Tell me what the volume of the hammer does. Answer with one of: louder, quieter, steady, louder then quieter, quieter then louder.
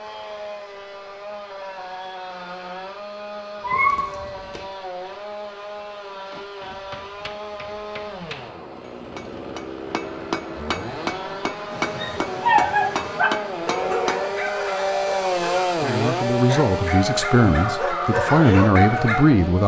louder.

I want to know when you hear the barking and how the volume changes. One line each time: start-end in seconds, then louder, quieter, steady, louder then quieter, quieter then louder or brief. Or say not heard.
11.7-19.2 quieter then louder.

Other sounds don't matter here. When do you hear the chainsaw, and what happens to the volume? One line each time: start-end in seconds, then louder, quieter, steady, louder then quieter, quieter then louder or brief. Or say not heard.
0.0-19.6 louder.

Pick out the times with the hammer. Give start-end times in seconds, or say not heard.
6.3-14.5.